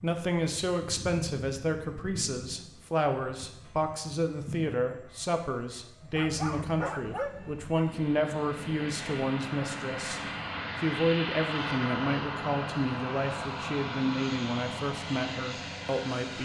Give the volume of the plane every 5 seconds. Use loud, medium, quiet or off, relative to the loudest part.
medium, medium, loud, loud.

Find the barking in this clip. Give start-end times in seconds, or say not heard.
6.2-7.9.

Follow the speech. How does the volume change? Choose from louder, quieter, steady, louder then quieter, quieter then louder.
steady.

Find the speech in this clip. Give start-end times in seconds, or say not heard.
0.0-16.4.